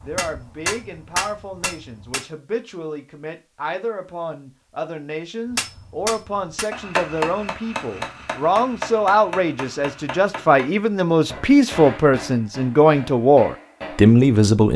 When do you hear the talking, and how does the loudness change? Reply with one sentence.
You can hear the talking from 0.0 to 14.7 s, getting louder.